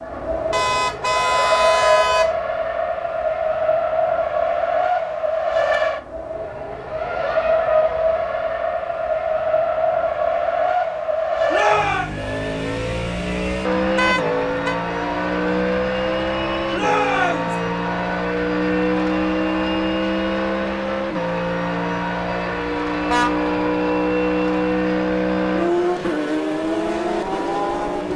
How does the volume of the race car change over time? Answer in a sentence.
The volume of the race car stays about the same.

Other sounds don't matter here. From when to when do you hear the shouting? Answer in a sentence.
The shouting can be heard from 11.5 to 12.1 s and from 16.7 to 17.6 s.